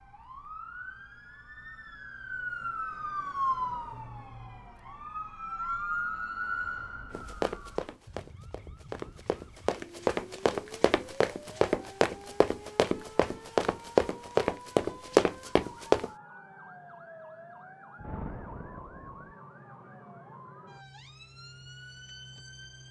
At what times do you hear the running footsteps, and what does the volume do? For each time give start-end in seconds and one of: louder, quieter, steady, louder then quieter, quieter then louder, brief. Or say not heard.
7.1-16.1 louder.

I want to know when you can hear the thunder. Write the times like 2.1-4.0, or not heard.
17.9-19.4.